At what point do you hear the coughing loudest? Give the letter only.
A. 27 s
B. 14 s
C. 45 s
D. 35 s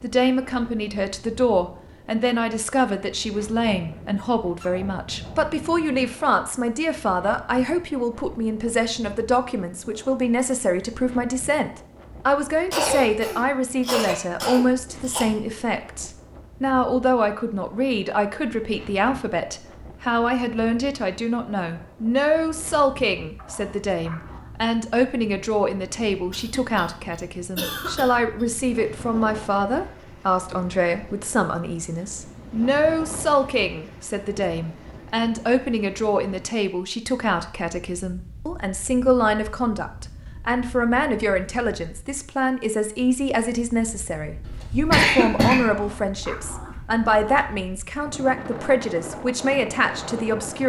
C.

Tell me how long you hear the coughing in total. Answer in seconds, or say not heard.
5 s.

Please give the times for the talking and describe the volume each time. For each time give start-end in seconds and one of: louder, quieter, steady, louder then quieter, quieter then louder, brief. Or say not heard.
0.0-50.6 steady.